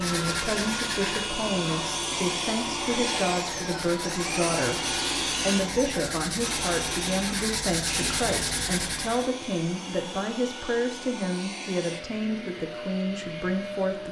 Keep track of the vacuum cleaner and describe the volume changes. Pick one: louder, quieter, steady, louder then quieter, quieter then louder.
quieter.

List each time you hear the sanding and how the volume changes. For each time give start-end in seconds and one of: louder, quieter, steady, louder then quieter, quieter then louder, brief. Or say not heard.
0.0-9.3 quieter then louder.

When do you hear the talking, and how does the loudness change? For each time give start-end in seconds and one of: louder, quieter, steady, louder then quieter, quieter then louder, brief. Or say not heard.
0.0-14.0 steady.